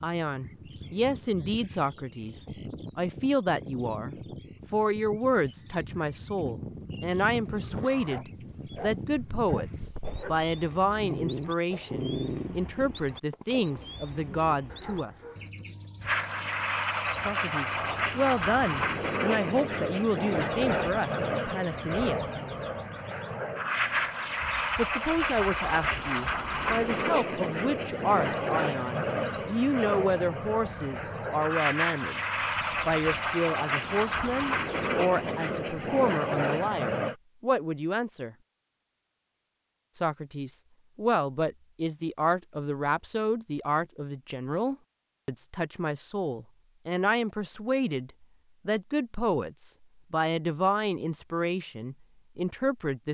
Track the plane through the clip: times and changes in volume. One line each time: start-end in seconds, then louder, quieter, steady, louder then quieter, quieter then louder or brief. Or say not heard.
16.0-37.1 steady.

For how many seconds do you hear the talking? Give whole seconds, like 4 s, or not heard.
46 s.